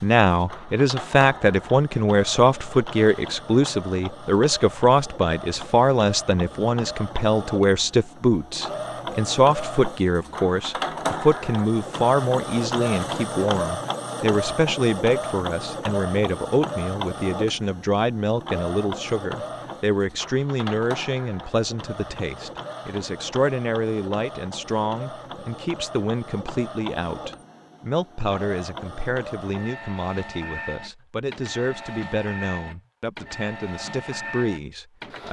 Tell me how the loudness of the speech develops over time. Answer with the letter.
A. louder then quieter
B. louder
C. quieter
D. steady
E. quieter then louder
C.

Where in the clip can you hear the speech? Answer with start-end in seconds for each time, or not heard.
0.0-35.2.